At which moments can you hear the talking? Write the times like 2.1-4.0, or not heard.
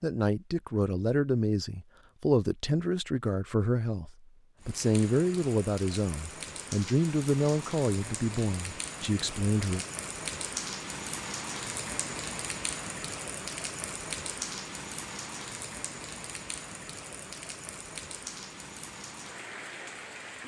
0.0-9.8.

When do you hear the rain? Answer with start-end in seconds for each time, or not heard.
4.6-20.4.